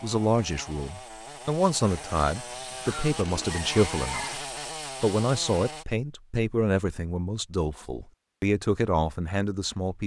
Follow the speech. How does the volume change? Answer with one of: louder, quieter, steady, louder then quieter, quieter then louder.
steady.